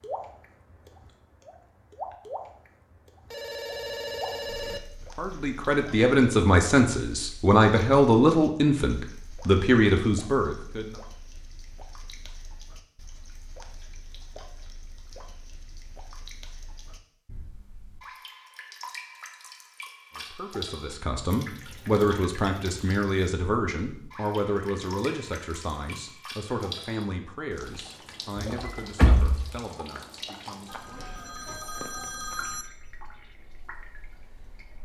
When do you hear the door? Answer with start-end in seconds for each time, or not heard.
28.4-29.6.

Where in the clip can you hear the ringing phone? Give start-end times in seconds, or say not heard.
3.3-4.8, 30.6-32.6.